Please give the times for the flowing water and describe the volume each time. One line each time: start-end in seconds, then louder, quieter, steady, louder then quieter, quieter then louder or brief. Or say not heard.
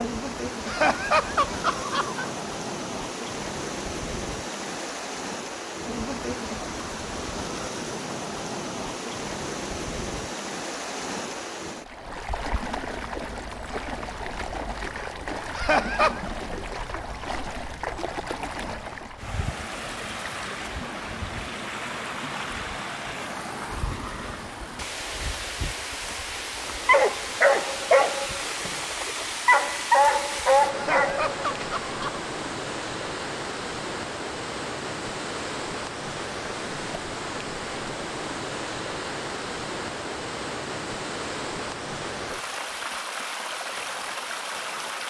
0.0-45.0 steady.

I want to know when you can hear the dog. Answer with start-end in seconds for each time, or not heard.
26.9-31.8.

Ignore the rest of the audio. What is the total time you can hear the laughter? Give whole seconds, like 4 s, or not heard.
4 s.